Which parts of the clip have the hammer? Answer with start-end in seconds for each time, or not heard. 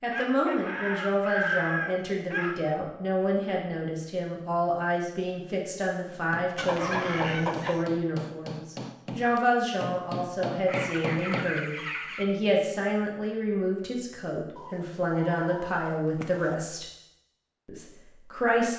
6.0-11.7.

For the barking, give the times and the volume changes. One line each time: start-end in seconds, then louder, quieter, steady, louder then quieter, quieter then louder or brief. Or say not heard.
not heard.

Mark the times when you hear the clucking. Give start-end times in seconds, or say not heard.
0.1-2.8, 6.5-7.8, 10.7-12.2, 14.6-16.6.